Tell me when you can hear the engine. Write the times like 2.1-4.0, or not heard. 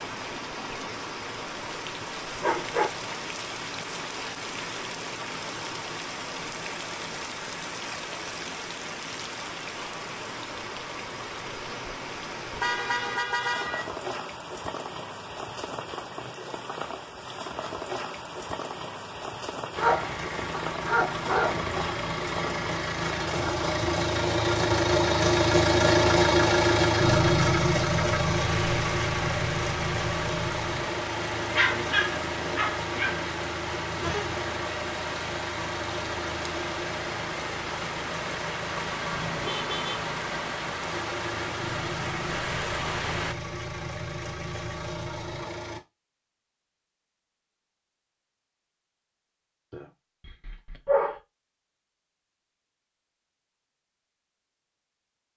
19.8-45.8.